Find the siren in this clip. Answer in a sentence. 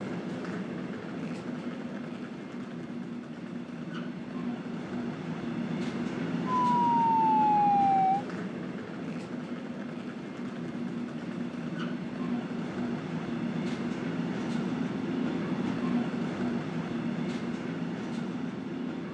You can hear the siren from 6.7 to 8.2 s.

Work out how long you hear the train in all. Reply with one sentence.
The train can be heard for 19 seconds in total.